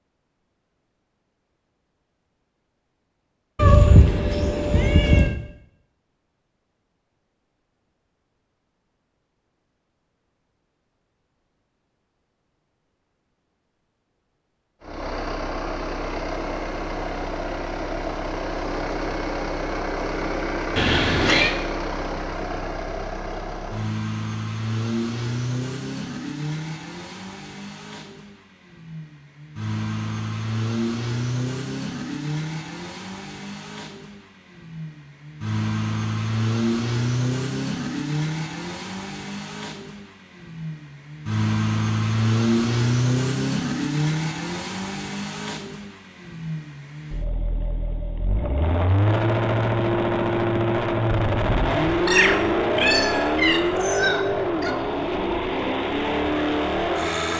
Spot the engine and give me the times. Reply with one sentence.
You can hear the engine from 14.8 to 57.3 s.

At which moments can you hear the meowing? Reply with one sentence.
The meowing can be heard from 3.5 to 5.3 s, from 20.8 to 21.6 s and from 52.0 to 54.8 s.